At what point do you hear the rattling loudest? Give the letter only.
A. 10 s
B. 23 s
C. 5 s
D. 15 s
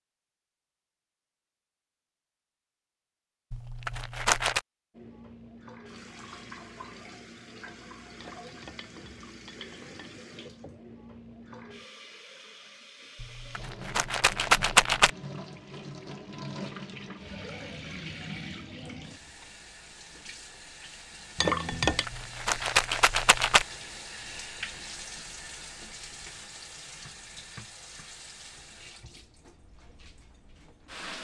D.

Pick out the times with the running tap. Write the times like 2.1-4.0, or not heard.
5.0-31.2.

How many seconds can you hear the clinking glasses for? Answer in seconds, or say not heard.
3 s.